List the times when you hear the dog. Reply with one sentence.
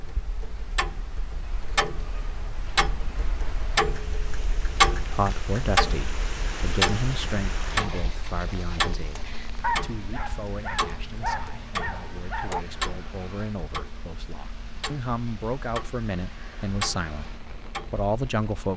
The dog can be heard from 9.6 to 12.6 s.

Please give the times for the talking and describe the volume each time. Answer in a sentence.
You can hear the talking from 5.1 to 18.7 s, getting quieter then louder.